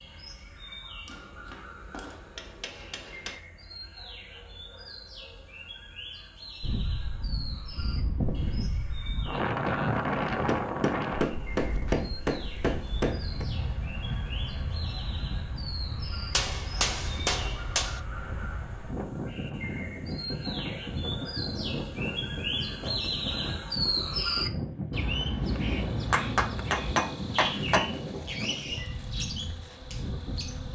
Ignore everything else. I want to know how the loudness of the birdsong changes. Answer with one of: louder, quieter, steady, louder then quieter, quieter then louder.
louder.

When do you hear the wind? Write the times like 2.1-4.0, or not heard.
6.6-30.6.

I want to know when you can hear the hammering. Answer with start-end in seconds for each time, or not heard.
1.1-3.4, 10.4-13.4, 16.3-18.0, 26.1-27.9.